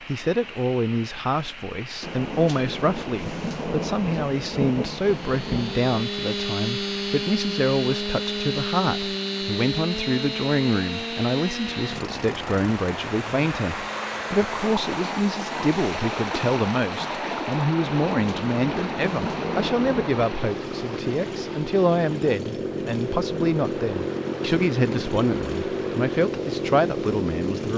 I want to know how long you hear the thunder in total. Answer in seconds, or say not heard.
6 s.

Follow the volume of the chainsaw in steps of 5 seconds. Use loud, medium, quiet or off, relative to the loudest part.
off, loud, medium, medium, loud, loud.